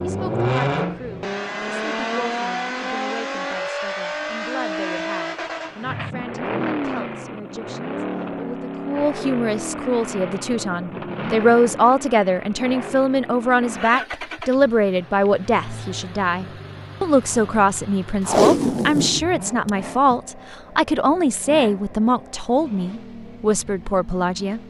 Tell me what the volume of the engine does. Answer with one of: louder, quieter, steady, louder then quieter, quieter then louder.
quieter.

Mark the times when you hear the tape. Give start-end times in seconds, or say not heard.
18.2-20.1.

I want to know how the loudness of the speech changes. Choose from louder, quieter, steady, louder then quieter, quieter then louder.
louder.